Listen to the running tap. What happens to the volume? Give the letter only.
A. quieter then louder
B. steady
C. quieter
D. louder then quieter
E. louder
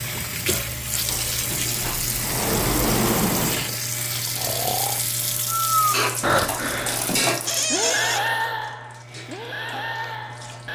C.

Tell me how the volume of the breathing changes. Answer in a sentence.
The loudness of the breathing goes down.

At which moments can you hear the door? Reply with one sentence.
The door can be heard from 1.1 to 3.7 s and from 7.5 to 8.3 s.